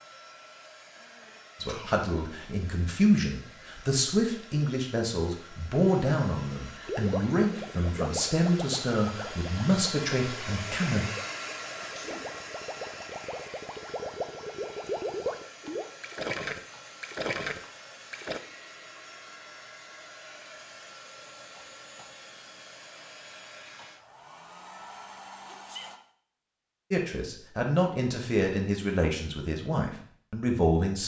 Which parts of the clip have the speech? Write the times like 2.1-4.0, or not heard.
1.6-11.1, 26.9-31.0.